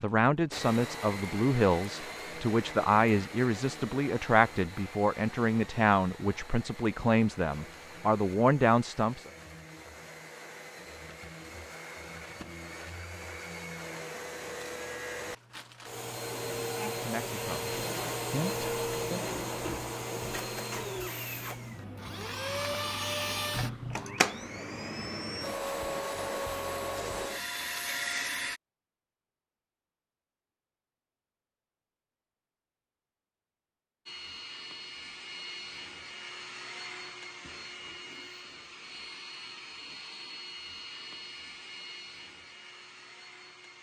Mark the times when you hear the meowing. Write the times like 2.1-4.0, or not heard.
23.5-24.2.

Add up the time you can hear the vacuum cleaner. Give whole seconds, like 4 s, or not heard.
38 s.